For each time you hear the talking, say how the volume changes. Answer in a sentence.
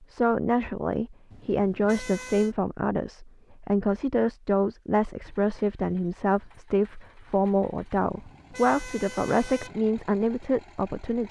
You can hear the talking from 0.0 to 11.2 s, at a steady volume.